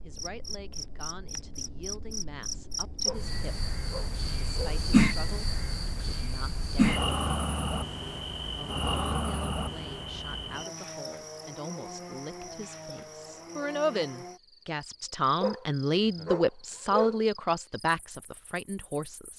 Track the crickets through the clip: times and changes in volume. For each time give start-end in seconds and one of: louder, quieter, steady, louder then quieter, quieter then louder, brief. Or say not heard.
0.0-19.3 louder then quieter.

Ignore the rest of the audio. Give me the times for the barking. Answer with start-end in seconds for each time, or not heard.
3.0-4.8, 15.4-17.2.